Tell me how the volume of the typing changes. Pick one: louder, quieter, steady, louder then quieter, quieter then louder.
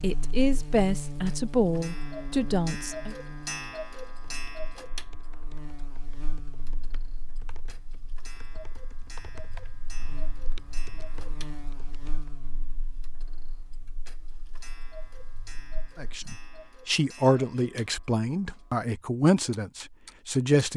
louder.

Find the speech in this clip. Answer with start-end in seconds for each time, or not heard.
0.0-3.1, 15.9-20.7.